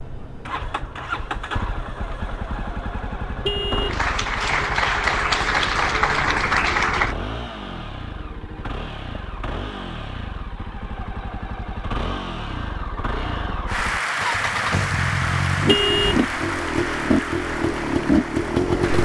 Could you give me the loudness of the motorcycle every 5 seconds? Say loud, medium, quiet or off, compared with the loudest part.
medium, medium, medium, loud.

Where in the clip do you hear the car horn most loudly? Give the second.
16 s.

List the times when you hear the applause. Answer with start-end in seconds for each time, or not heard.
3.9-7.2, 13.7-19.0.